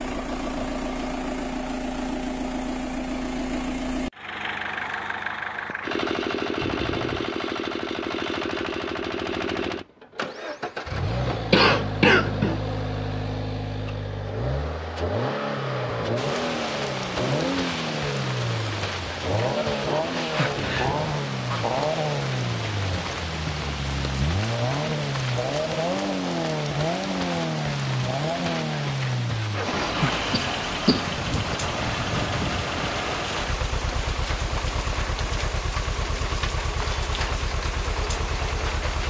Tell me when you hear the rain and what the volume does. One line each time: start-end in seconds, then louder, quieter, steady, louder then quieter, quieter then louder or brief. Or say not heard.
16.1-39.0 steady.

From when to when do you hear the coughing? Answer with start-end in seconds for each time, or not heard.
11.1-12.6, 30.3-31.2.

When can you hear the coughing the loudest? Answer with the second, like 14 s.
12 s.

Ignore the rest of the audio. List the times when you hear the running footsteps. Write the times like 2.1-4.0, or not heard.
not heard.